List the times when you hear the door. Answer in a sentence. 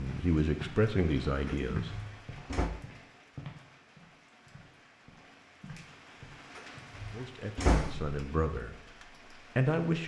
You can hear the door from 1.4 to 2.8 s and from 6.5 to 8.2 s.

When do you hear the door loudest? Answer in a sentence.
The loudest moment of the door is at 8 seconds.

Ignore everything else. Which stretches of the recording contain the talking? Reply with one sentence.
You can hear the talking from 0.0 to 1.9 s and from 7.1 to 10.0 s.